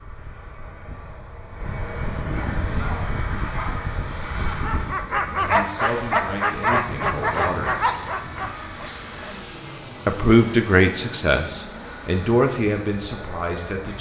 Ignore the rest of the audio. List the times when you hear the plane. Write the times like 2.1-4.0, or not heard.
0.0-13.9.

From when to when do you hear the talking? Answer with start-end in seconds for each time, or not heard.
5.3-7.8, 10.1-13.9.